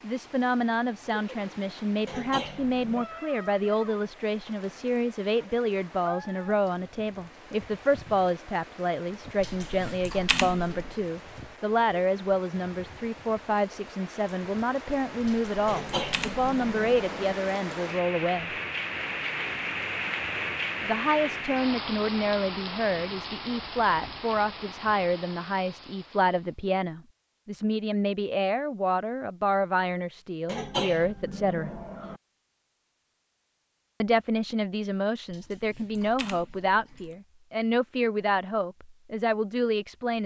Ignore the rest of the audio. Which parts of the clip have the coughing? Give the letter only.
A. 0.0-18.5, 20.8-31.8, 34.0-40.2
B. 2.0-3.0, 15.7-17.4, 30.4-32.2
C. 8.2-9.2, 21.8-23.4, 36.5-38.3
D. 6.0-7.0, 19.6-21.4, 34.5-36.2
B.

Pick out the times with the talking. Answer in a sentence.
The talking can be heard from 0.0 to 18.5 s, from 20.8 to 31.8 s and from 34.0 to 40.2 s.